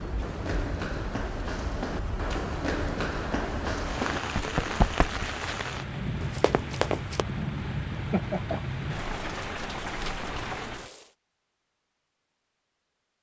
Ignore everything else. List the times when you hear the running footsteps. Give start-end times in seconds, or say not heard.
0.2-7.2.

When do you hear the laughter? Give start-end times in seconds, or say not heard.
8.1-8.6.